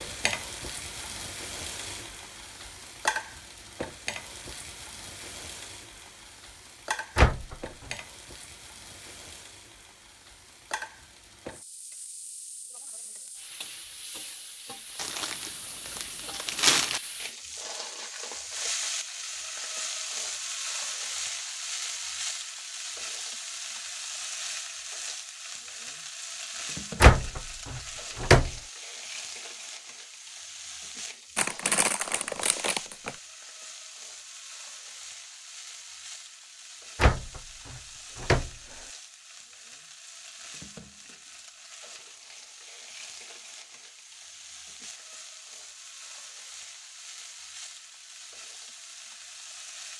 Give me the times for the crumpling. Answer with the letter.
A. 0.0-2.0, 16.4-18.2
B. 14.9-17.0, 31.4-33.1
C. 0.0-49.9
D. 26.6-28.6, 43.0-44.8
B.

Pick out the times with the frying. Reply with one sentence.
You can hear the frying from 0.0 to 49.9 s.